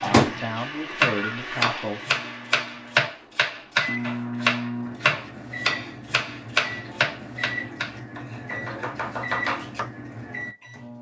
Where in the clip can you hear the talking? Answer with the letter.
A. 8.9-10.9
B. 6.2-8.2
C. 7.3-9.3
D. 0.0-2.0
D.